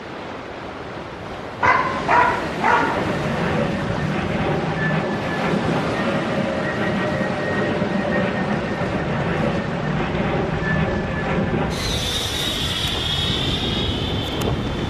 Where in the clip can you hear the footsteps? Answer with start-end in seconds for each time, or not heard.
not heard.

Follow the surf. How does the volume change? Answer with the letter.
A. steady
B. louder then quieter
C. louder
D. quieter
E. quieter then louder
A.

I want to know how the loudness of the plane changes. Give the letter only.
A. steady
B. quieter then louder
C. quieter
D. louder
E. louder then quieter
A.